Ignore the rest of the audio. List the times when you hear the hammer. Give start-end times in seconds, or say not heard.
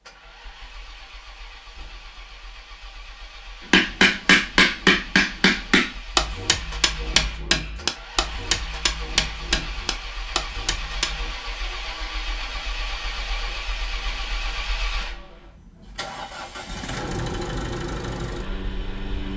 3.7-11.3.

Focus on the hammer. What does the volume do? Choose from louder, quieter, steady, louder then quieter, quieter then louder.
quieter.